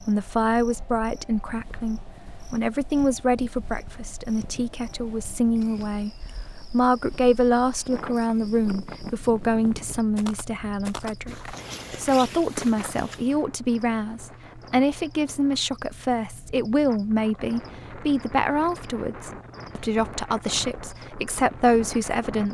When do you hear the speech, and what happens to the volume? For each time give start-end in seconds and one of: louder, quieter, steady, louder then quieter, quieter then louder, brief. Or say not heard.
0.0-22.4 steady.